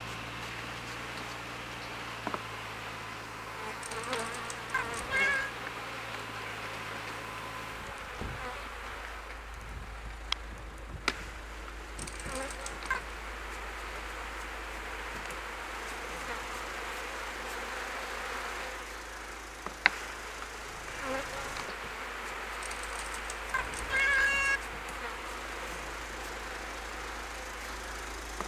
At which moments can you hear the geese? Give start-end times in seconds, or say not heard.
not heard.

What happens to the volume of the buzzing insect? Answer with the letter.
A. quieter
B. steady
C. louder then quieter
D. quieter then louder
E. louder
B.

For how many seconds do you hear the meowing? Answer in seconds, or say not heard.
5 s.